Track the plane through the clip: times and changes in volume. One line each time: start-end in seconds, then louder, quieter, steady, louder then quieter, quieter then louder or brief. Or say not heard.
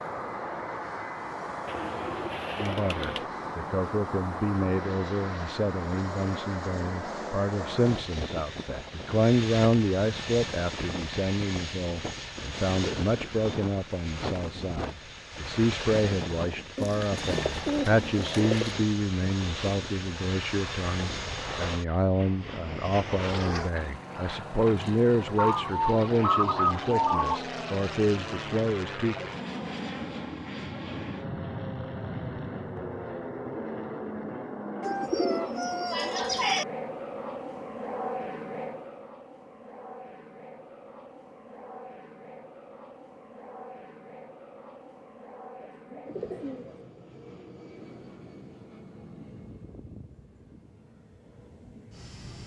0.0-52.4 quieter.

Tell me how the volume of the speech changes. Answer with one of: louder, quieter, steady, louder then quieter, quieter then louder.
steady.